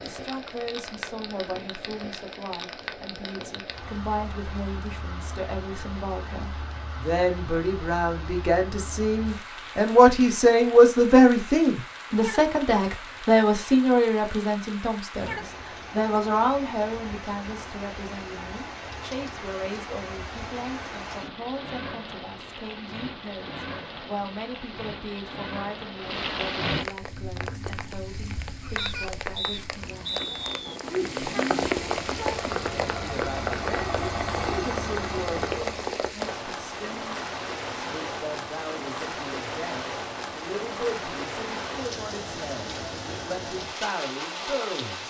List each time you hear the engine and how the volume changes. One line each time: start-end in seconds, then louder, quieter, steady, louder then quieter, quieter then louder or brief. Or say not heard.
26.9-36.0 louder.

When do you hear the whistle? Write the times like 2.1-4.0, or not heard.
28.8-30.8.